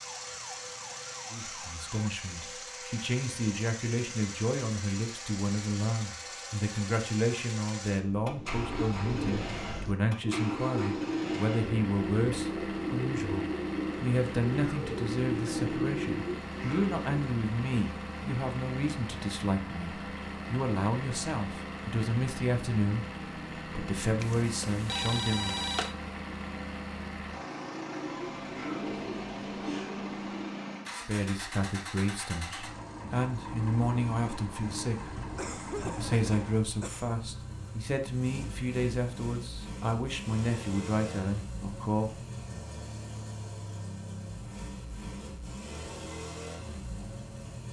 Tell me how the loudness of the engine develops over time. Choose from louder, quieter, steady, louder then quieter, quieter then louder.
steady.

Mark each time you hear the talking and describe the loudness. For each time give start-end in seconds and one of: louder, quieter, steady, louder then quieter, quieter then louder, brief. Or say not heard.
1.3-25.6 steady
30.9-42.1 steady.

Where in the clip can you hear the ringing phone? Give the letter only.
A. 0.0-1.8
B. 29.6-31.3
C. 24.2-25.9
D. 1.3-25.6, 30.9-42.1
C.